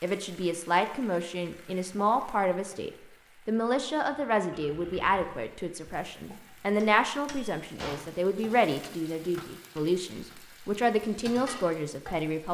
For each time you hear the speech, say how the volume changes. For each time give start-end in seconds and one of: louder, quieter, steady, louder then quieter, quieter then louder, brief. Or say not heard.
0.0-12.4 steady.